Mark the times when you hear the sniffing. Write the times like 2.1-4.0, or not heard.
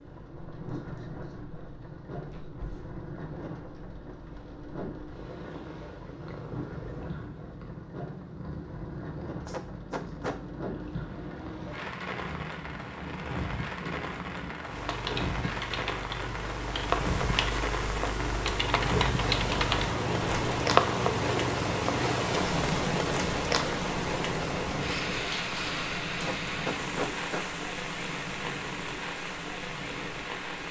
9.4-10.4, 26.1-27.4.